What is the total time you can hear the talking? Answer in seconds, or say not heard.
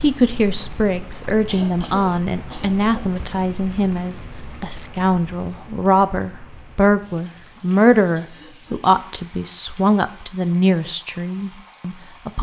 12 s.